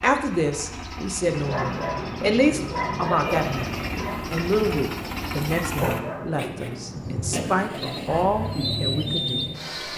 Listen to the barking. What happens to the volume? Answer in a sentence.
The volume of the barking goes down.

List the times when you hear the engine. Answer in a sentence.
You can hear the engine from 0.0 to 9.9 s.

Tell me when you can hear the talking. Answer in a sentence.
You can hear the talking from 0.0 to 9.9 s.